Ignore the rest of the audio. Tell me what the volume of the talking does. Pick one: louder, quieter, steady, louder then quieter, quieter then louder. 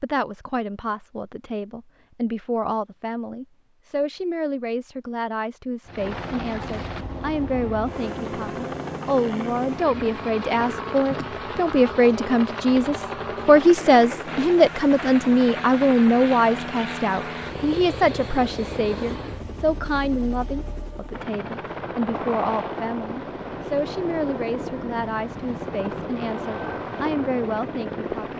louder then quieter.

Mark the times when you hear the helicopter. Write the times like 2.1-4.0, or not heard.
5.8-28.3.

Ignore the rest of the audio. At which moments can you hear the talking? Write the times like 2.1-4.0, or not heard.
0.0-28.3.